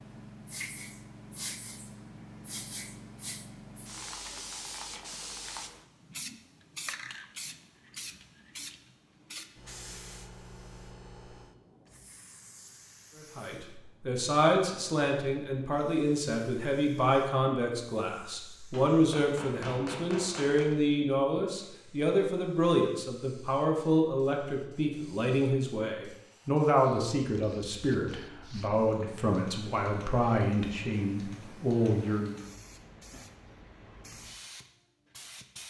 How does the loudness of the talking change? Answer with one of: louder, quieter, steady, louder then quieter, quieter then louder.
steady.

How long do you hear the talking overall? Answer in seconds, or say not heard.
19 s.